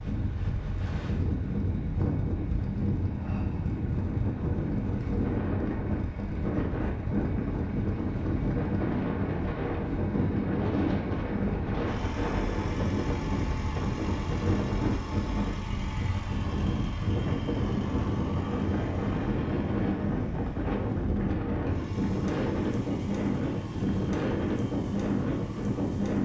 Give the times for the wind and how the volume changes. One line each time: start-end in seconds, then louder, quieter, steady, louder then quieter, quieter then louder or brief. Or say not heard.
0.0-26.2 steady.